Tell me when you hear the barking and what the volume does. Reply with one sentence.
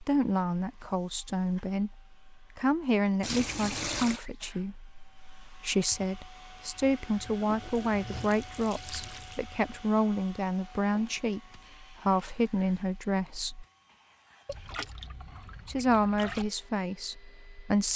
You can't hear the barking here.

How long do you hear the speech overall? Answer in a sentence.
The speech can be heard for 16 seconds in total.